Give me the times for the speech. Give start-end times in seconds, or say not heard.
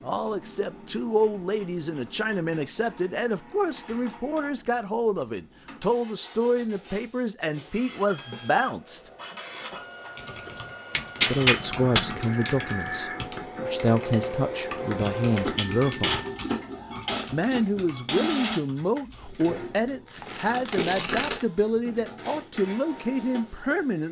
0.0-9.1, 11.2-16.2, 17.3-24.0.